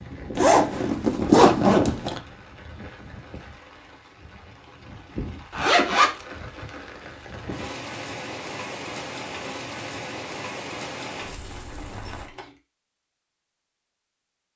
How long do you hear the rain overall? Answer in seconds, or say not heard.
12 s.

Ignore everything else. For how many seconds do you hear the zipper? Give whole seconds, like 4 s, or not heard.
4 s.